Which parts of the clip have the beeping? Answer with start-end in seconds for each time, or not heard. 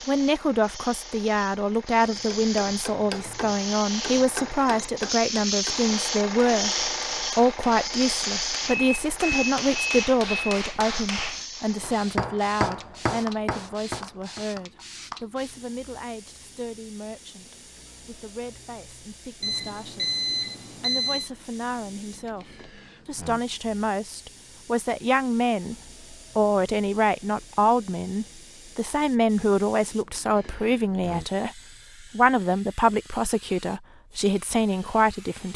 8.7-10.6, 19.4-21.3.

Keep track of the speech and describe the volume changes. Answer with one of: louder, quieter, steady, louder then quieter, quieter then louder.
quieter then louder.